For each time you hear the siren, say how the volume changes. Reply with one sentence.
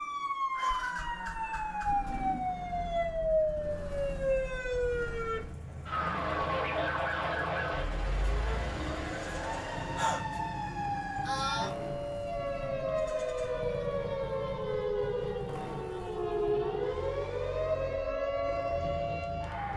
The siren can be heard from 0.0 to 19.7 s, at a steady volume.